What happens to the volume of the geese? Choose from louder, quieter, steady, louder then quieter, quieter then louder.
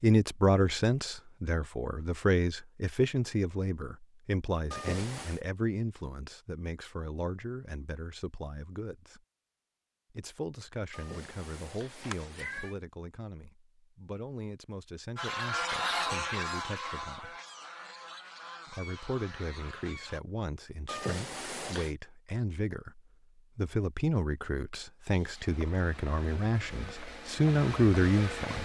quieter.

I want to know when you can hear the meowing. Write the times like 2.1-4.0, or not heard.
4.7-5.4, 10.9-12.8, 20.9-21.9.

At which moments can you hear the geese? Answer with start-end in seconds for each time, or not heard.
15.2-20.2.